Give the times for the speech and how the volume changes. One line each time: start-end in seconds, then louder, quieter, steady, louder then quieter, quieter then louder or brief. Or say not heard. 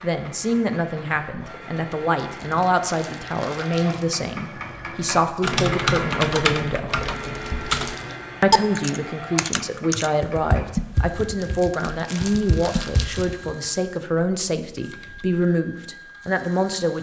0.0-6.9 steady
8.4-16.9 steady.